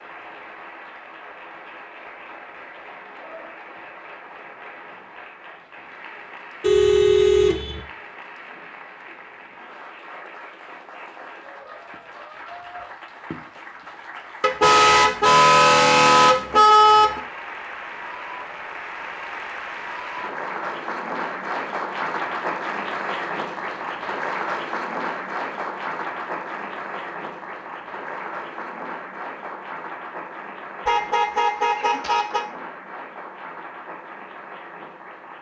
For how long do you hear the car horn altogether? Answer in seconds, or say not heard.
6 s.